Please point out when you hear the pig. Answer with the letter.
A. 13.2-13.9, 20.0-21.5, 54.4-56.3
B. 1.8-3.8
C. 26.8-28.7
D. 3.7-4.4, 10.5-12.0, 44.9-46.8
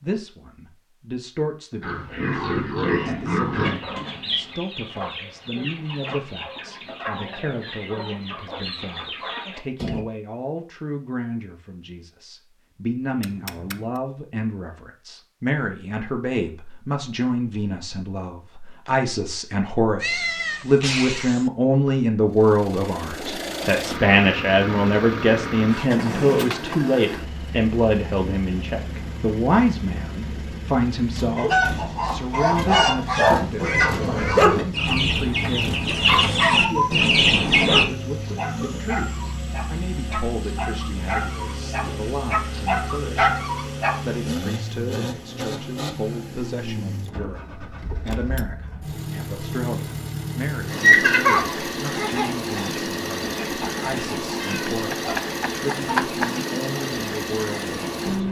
B.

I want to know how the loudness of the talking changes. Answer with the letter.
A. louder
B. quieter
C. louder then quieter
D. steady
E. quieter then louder
C.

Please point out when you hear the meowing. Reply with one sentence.
You can hear the meowing from 13.2 to 13.9 s, from 20.0 to 21.5 s and from 54.4 to 56.3 s.